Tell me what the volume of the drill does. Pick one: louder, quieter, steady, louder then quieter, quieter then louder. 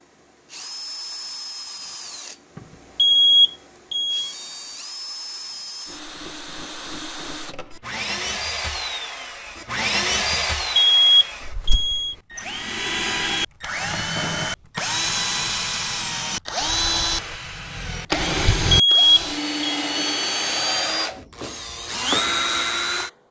louder.